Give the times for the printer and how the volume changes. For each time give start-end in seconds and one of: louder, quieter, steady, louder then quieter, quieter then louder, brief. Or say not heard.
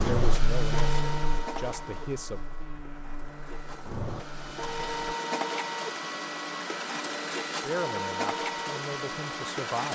0.0-9.9 quieter then louder.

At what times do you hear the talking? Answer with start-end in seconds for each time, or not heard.
0.0-2.4, 7.6-9.9.